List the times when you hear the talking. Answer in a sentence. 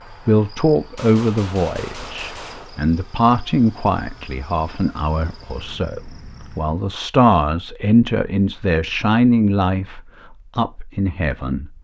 You can hear the talking from 0.1 to 11.7 s.